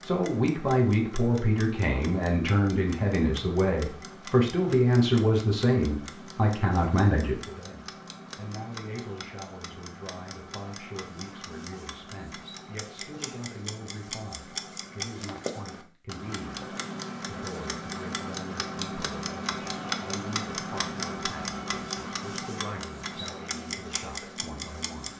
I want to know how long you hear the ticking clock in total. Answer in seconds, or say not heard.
25 s.